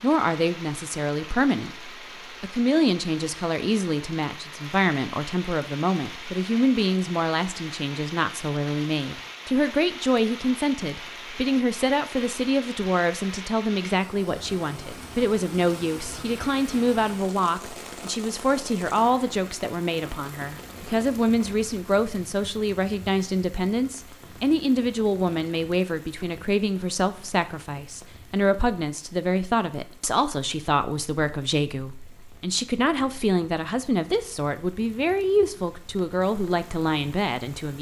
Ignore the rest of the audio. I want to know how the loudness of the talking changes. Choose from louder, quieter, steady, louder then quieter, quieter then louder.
steady.